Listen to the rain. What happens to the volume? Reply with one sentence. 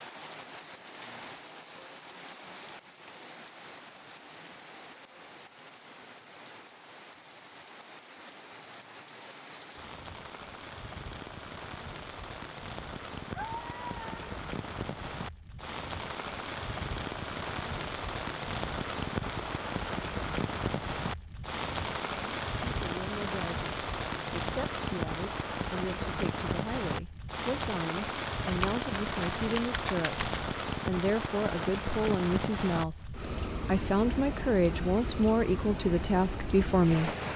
The volume of the rain goes up.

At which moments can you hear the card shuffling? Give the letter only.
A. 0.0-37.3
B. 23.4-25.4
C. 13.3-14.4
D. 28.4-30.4
D.